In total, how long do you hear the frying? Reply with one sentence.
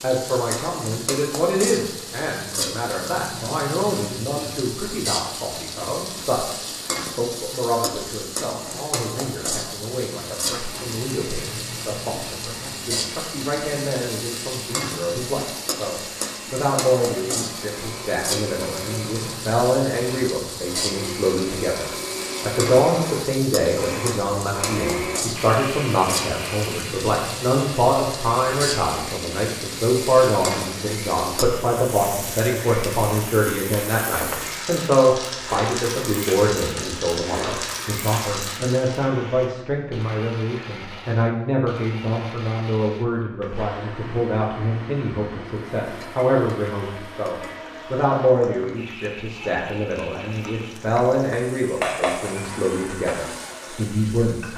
You can hear the frying for 48 seconds altogether.